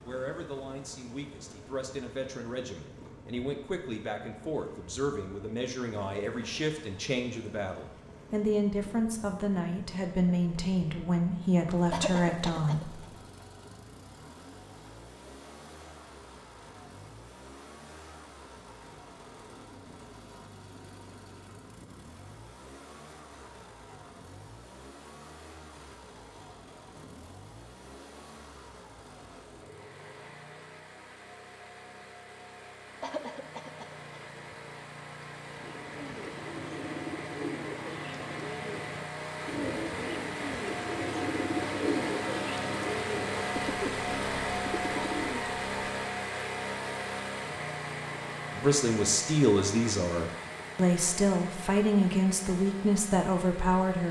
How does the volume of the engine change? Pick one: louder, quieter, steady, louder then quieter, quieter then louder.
louder.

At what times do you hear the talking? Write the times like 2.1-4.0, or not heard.
0.0-13.1, 48.5-54.0.